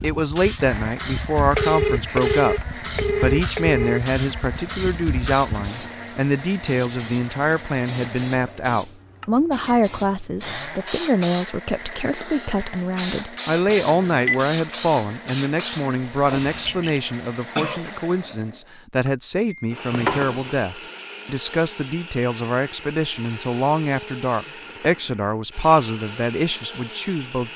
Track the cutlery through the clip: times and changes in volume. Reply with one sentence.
The cutlery can't be heard in this clip.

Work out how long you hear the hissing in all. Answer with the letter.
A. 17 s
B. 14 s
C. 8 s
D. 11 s
A.